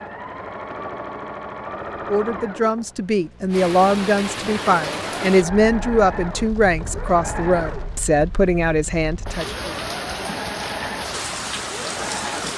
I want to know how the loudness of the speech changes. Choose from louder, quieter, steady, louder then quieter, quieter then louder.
steady.